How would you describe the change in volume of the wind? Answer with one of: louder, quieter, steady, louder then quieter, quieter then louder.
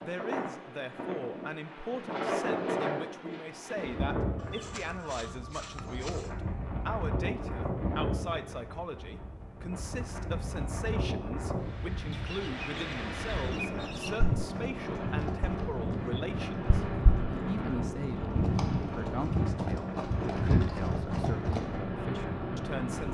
steady.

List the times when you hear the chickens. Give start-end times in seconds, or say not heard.
4.3-6.3, 12.1-14.2.